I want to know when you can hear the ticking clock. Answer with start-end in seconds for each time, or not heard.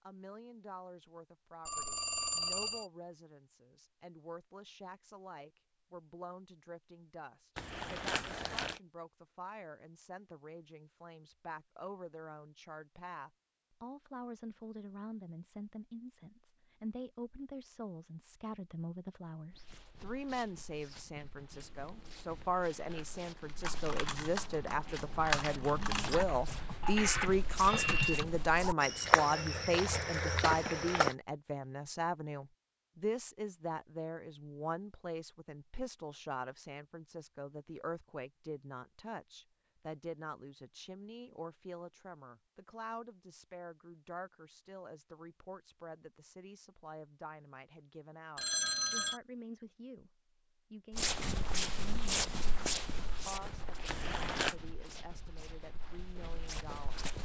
not heard.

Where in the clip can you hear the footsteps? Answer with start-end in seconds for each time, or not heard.
19.5-31.1, 50.9-57.2.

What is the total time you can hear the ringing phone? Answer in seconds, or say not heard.
4 s.